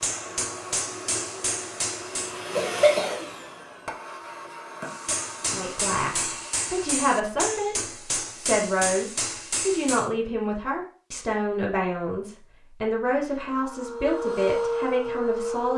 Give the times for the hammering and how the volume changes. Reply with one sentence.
You can hear the hammering briefly from 0.0 to 2.5 s; and from 4.8 to 10.1 s, at a steady volume.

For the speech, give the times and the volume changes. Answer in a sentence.
The speech can be heard from 5.5 to 15.7 s, at a steady volume.